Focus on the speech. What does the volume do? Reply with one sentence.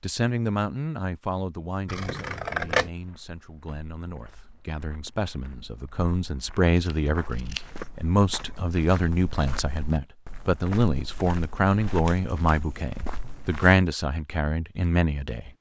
The loudness of the speech goes up.